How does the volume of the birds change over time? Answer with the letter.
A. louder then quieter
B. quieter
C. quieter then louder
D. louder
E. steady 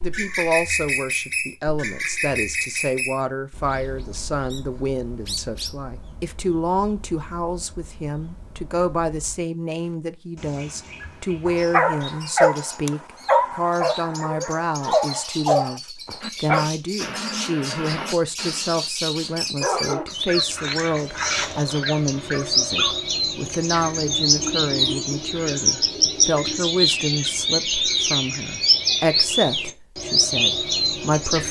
C.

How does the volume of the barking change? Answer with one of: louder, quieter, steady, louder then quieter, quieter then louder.
quieter.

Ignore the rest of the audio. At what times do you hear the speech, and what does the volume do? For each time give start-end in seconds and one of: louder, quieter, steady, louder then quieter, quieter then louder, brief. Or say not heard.
0.0-31.4 steady.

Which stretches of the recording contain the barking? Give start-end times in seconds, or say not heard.
11.4-23.0.